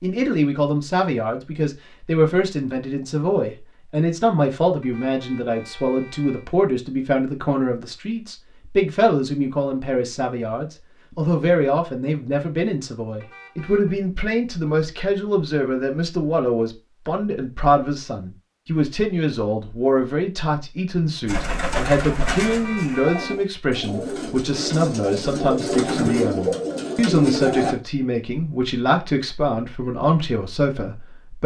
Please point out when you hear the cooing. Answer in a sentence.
You can hear the cooing from 21.2 to 27.8 s.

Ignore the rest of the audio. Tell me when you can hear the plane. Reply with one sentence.
The plane can't be heard in this clip.